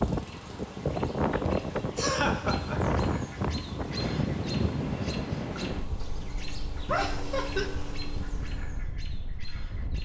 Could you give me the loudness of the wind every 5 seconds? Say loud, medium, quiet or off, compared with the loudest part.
loud, medium.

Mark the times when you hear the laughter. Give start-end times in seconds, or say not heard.
1.4-3.0, 6.8-7.7.